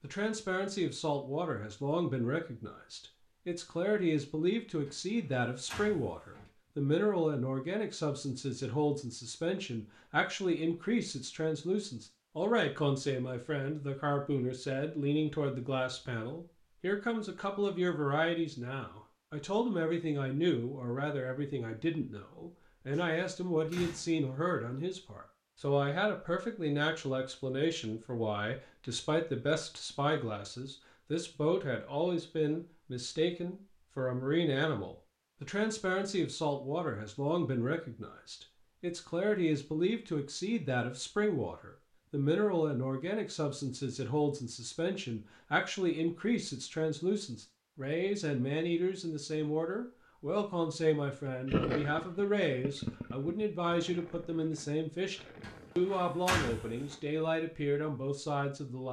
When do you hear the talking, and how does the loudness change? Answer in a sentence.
You can hear the talking from 0.0 to 58.8 s, at a steady volume.